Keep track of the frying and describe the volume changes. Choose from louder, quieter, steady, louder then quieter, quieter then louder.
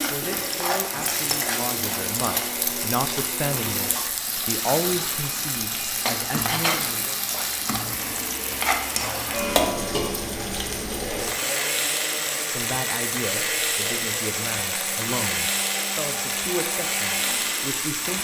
steady.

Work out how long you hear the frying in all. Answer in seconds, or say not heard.
18 s.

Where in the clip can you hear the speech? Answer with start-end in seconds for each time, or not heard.
0.1-7.2, 12.5-18.1.